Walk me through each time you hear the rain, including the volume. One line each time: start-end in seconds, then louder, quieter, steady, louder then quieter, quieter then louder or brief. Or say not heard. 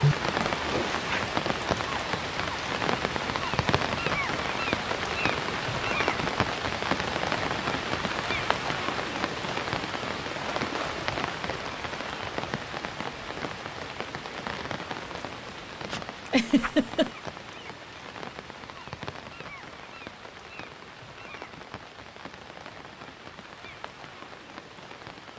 0.0-25.3 quieter.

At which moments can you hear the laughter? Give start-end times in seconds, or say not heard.
16.2-17.1.